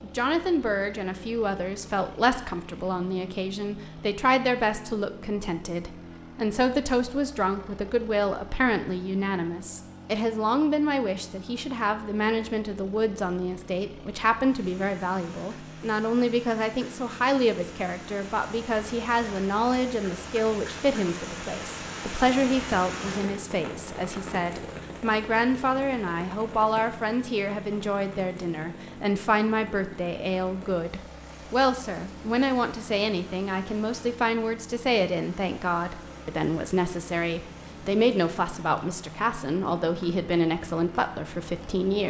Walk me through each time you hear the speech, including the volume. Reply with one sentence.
The speech can be heard from 0.0 to 42.0 s, at a steady volume.